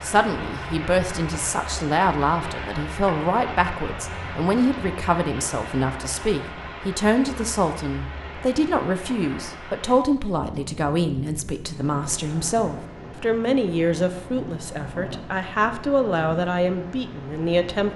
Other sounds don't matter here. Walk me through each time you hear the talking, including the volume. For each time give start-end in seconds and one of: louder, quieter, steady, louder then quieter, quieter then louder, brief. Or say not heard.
0.0-17.9 steady.